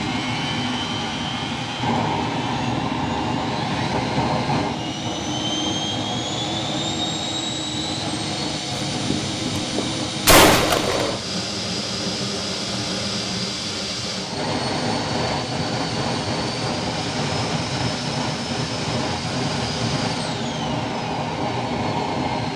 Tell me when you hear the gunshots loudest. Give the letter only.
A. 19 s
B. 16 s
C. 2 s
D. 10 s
D.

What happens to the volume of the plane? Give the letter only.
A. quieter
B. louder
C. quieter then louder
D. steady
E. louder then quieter
D.